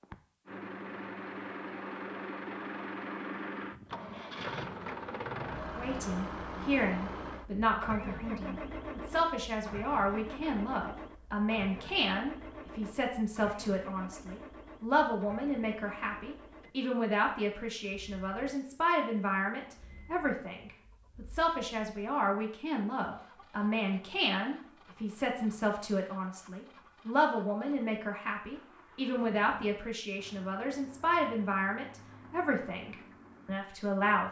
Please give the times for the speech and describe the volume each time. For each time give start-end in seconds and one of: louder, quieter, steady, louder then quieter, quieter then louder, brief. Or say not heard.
5.8-34.2 steady.